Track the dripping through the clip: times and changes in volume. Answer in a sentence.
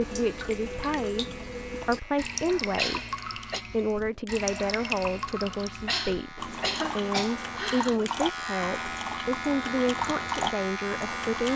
The dripping can be heard from 0.0 to 11.5 s, at a steady volume.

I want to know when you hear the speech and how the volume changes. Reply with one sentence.
You can hear the speech from 0.0 to 11.5 s, at a steady volume.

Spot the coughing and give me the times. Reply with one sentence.
The coughing can be heard from 2.8 to 3.6 s and from 5.8 to 8.0 s.